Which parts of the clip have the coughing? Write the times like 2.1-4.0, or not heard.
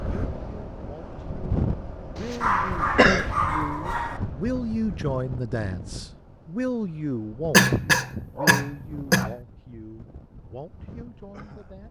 2.1-3.4, 7.5-9.3.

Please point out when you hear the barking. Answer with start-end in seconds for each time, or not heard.
2.4-4.2, 8.3-9.4.